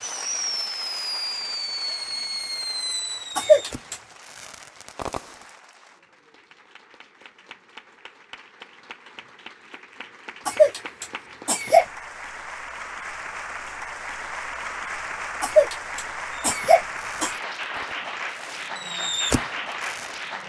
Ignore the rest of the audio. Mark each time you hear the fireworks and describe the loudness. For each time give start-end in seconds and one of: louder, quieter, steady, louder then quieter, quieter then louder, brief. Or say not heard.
0.0-5.5 quieter
16.3-20.4 louder then quieter.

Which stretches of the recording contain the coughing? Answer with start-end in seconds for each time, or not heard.
3.4-4.0, 10.4-11.8, 15.4-17.4.